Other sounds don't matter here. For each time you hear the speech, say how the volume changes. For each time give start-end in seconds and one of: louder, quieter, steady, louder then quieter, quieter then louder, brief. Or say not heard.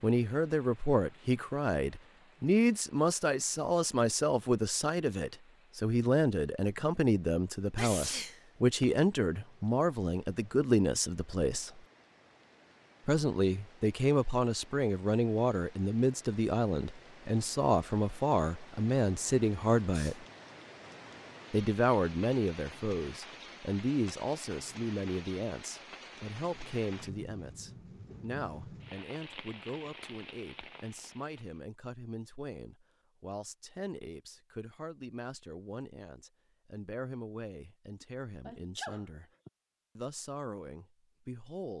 0.0-11.8 steady
13.1-20.2 steady
21.5-39.3 quieter
40.0-41.7 brief.